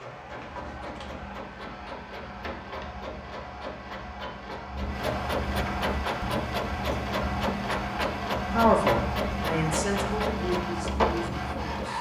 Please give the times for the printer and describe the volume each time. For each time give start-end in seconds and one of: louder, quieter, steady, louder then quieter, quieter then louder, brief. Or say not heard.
0.0-11.9 louder.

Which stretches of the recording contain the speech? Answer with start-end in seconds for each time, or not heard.
8.5-11.9.